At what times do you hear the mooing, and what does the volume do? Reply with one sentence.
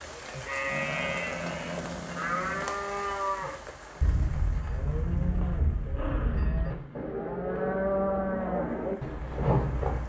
The mooing can be heard from 0.1 to 10.0 s, getting louder.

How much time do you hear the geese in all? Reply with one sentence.
You can't hear the geese here.